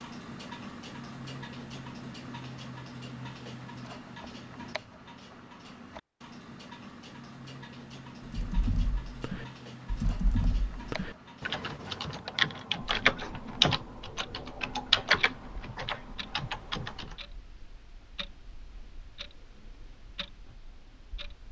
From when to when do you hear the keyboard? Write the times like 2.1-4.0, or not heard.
8.3-17.1.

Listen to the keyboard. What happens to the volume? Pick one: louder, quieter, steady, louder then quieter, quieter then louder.
louder then quieter.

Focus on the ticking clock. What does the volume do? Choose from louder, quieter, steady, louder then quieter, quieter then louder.
quieter.